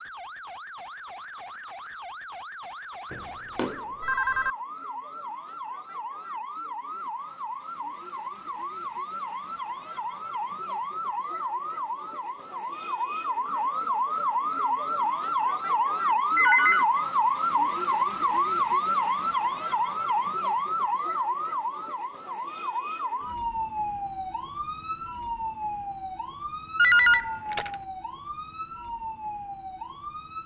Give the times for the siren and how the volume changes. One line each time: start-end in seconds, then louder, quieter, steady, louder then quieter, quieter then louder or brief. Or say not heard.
0.0-30.4 louder then quieter.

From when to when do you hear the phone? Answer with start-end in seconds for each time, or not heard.
3.1-4.5, 16.4-17.1, 26.8-27.8.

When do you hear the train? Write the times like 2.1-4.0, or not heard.
not heard.